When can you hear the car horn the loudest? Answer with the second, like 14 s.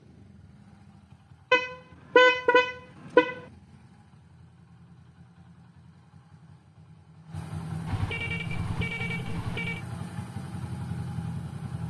2 s.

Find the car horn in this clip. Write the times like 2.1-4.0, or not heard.
1.5-3.4, 7.8-9.8.